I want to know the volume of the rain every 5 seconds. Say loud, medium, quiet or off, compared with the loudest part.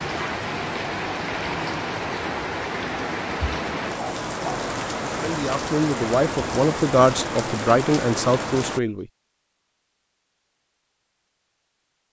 loud, loud, off.